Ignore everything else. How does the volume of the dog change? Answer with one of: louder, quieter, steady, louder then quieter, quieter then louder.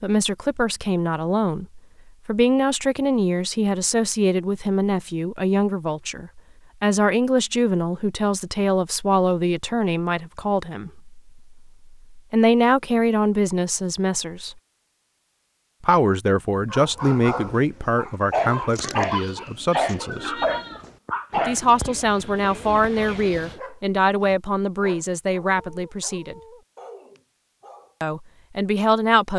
quieter.